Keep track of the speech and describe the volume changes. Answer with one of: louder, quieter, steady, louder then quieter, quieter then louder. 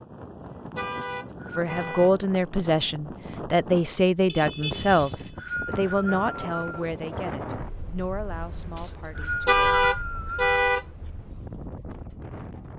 quieter.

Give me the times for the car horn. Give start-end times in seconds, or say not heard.
0.8-2.1, 4.2-5.5, 9.4-10.8.